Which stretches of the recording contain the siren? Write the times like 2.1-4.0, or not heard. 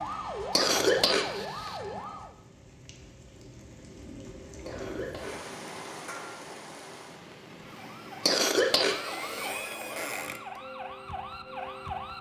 0.0-2.4, 7.5-12.1.